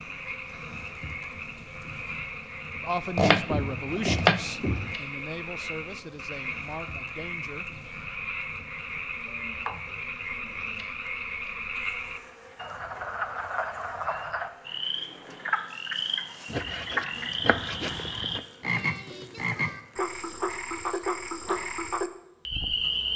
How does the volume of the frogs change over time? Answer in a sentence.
The volume of the frogs goes up.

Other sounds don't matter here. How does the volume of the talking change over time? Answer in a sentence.
The volume of the talking goes down.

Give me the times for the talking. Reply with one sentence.
You can hear the talking from 2.8 to 7.8 s.